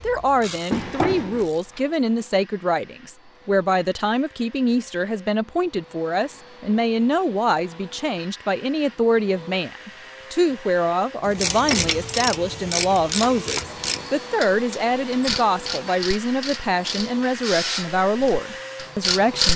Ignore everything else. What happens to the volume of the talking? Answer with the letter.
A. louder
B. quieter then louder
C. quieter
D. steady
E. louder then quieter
D.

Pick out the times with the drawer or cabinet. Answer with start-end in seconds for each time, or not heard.
0.7-1.8.